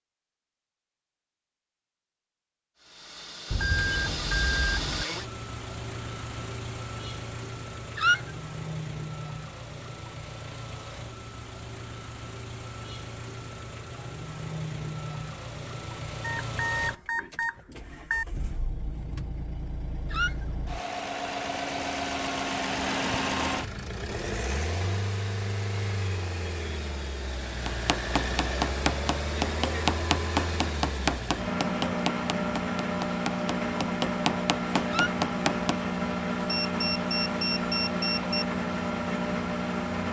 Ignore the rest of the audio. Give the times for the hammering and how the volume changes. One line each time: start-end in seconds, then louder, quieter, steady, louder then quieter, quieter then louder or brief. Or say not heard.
27.6-35.8 quieter then louder.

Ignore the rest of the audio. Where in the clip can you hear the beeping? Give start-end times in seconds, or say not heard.
3.5-5.0, 16.2-18.2, 36.5-38.5.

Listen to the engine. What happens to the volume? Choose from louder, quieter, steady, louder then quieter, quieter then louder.
louder.